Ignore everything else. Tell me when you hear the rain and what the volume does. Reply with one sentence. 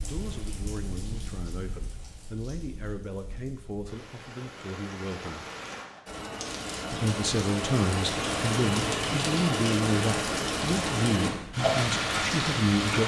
You can hear the rain from 0.0 to 13.0 s, getting louder.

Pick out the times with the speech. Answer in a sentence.
You can hear the speech from 0.0 to 5.5 s and from 6.9 to 13.0 s.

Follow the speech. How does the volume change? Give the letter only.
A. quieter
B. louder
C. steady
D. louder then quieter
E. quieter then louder
B.